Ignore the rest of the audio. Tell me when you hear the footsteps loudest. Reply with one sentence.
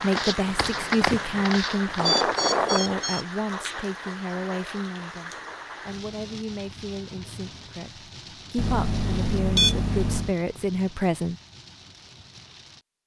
The volume of the footsteps peaks at 1 second.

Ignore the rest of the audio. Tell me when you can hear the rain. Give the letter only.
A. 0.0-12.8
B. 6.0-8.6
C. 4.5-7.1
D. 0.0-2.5
A.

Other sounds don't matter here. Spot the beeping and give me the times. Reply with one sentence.
The beeping can be heard from 1.9 to 3.2 s and from 8.6 to 10.3 s.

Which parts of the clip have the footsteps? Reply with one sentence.
The footsteps can be heard from 0.0 to 2.5 s.